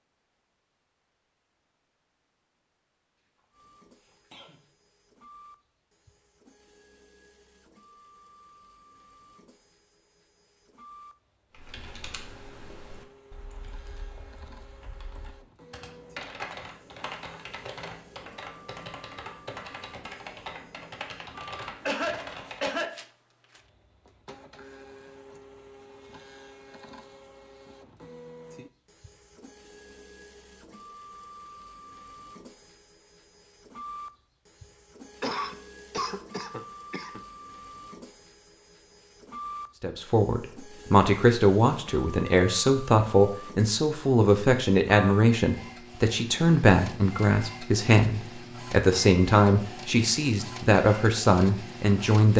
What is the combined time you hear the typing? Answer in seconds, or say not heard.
11 s.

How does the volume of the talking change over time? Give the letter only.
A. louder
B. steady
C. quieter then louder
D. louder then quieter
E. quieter
B.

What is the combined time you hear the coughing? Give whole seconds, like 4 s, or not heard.
4 s.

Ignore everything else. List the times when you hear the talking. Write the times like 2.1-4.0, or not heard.
39.8-52.3.